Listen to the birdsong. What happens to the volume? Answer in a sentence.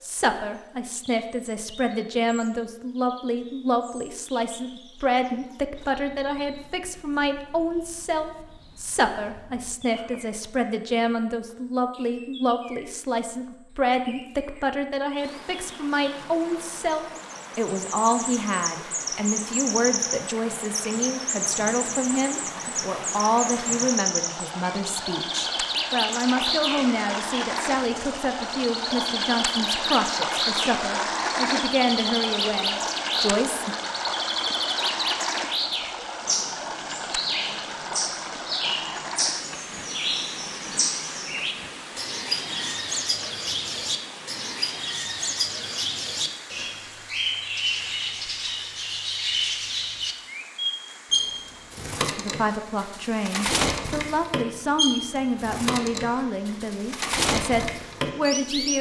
The volume of the birdsong goes up.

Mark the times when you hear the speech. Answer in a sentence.
The speech can be heard from 0.0 to 33.8 s and from 52.0 to 58.7 s.